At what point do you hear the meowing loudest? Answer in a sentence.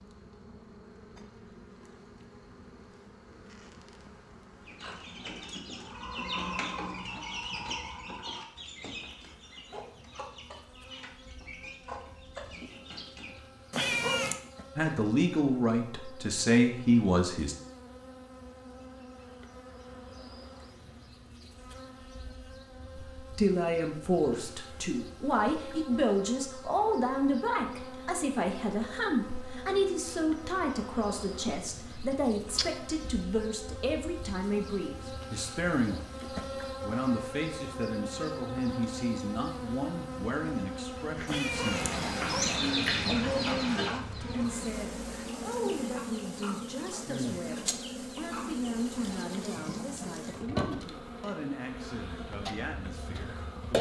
The loudest moment of the meowing is at 14 seconds.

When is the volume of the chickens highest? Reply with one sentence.
The loudest moment of the chickens is at 43 seconds.